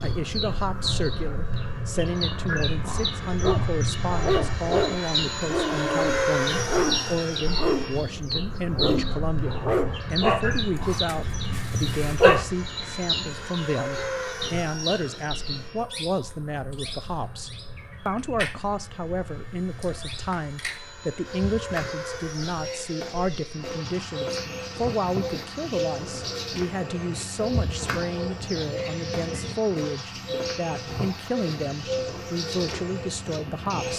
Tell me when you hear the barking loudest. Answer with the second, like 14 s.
12 s.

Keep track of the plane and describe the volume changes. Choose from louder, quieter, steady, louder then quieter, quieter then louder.
quieter.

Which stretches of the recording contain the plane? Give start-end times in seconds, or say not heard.
0.0-33.9.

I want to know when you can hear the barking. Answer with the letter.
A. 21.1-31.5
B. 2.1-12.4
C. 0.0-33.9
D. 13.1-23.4
B.